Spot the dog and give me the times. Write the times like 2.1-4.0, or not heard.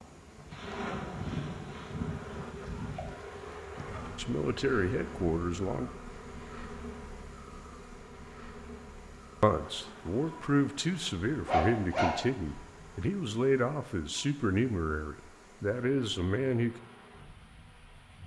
11.4-13.1.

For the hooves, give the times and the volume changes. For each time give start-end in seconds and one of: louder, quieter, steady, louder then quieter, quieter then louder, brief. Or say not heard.
0.0-4.2 louder then quieter.